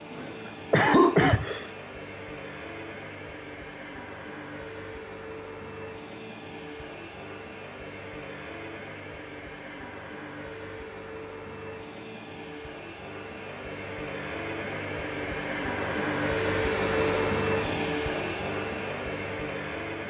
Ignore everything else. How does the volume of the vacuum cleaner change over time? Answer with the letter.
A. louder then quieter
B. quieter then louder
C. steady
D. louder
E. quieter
D.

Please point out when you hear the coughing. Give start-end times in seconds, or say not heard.
0.1-1.7.